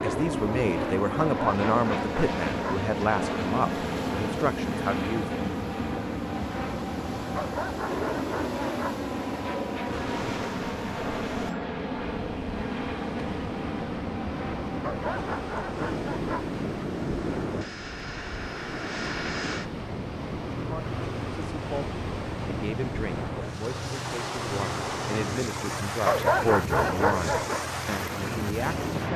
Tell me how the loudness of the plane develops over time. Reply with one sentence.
The loudness of the plane goes down.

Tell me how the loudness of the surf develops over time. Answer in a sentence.
The loudness of the surf goes up.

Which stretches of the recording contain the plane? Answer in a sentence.
The plane can be heard from 0.0 to 29.1 s.